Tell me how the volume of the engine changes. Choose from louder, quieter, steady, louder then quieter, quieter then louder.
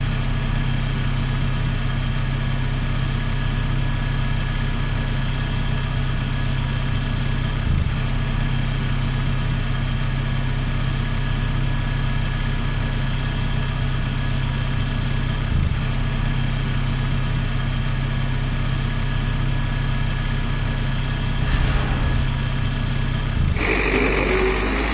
steady.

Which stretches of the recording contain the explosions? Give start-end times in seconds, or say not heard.
21.4-22.3.